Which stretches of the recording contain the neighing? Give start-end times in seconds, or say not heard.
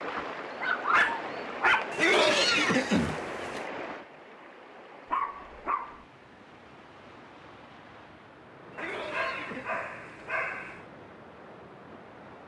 1.9-3.6, 8.7-9.8.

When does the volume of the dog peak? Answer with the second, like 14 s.
1 s.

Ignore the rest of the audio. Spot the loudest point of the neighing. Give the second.
2 s.